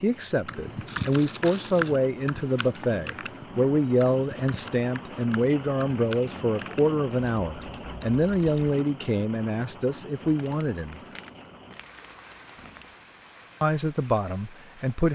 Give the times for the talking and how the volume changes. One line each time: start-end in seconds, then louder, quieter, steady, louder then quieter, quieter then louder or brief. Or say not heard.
0.0-11.0 steady
13.6-15.1 brief.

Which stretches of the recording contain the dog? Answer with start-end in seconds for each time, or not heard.
not heard.